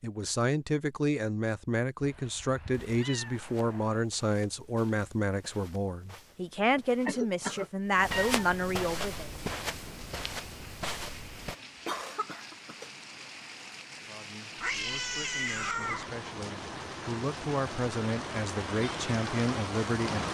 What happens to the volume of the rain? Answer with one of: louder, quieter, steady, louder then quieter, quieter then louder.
louder.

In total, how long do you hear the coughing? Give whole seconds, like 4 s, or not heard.
2 s.